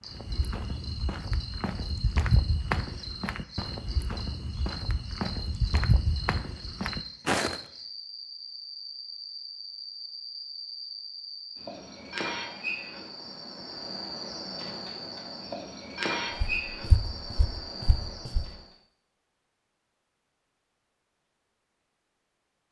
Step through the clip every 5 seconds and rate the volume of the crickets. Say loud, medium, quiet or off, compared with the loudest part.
medium, medium, loud, loud, off.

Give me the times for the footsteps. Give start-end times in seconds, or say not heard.
0.1-7.6, 16.4-18.6.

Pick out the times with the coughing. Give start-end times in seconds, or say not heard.
not heard.